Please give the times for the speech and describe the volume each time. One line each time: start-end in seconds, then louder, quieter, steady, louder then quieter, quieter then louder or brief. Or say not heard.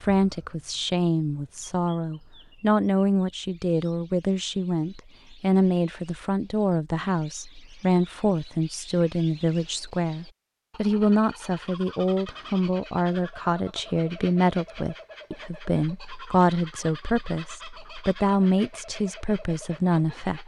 0.0-20.4 steady.